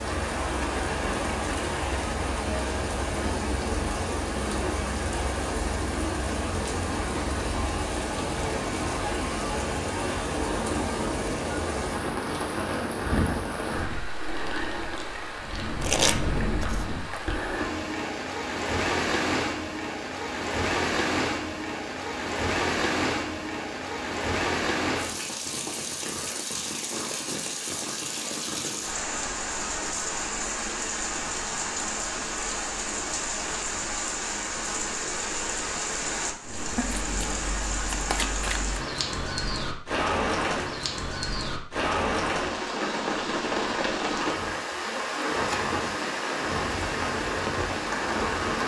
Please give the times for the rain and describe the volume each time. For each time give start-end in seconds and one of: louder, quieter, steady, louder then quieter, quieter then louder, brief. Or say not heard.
0.0-48.6 steady.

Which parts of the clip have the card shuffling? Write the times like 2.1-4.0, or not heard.
15.8-16.9, 36.8-38.8.